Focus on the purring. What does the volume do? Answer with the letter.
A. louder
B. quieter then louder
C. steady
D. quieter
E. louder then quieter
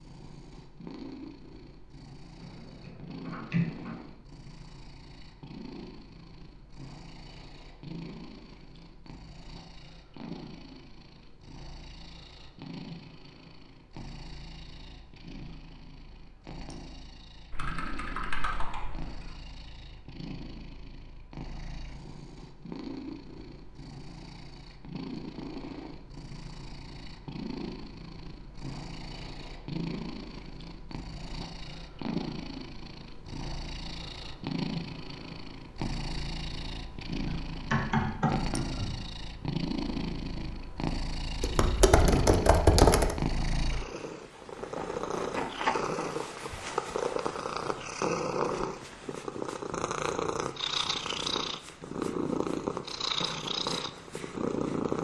A.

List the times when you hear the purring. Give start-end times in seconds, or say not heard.
0.0-54.9.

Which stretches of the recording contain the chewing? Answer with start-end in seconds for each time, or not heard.
not heard.